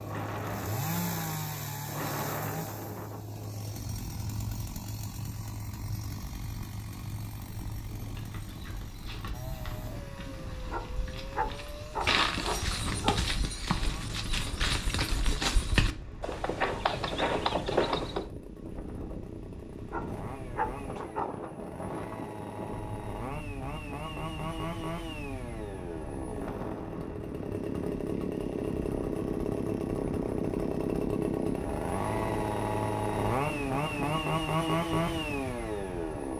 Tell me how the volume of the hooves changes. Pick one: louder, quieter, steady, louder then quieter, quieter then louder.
louder.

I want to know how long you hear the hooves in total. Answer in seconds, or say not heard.
10 s.